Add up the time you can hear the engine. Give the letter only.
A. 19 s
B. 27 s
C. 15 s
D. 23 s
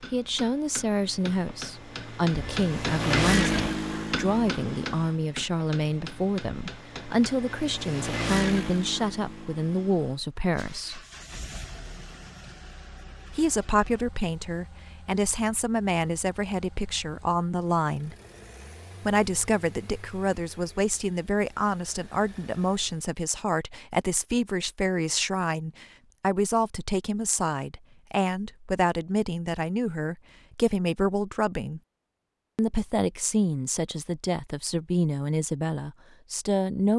D.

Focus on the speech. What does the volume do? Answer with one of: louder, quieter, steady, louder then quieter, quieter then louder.
steady.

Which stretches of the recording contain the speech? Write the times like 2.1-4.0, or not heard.
0.0-11.1, 13.3-18.1, 19.1-31.8, 32.5-36.9.